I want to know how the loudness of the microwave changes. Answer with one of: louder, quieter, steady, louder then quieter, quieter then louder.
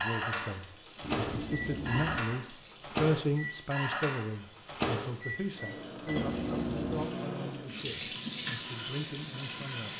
quieter.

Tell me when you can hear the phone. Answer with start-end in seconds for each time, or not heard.
1.0-2.2, 6.2-7.0.